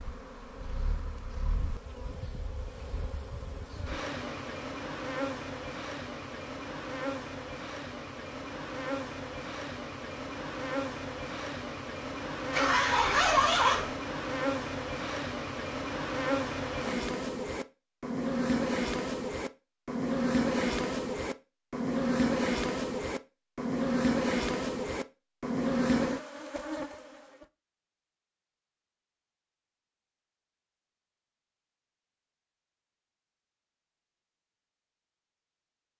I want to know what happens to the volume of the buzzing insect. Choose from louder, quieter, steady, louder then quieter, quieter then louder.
louder.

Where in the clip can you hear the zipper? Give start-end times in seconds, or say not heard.
12.5-13.9.